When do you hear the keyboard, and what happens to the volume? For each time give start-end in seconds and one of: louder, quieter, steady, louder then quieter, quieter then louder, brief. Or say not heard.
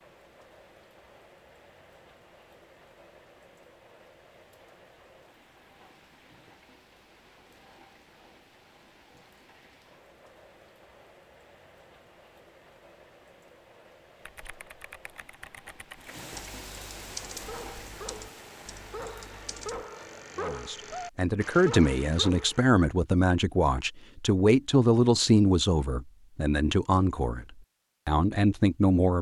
14.2-19.9 louder then quieter.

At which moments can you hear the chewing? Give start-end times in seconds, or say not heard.
not heard.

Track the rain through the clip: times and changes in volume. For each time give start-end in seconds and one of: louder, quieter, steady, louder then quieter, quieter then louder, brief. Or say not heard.
0.0-20.2 louder.